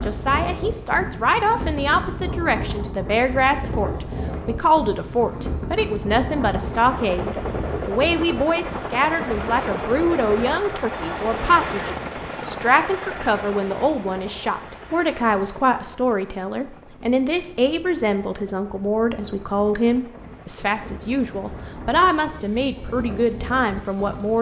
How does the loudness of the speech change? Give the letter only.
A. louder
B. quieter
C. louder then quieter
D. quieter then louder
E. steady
E.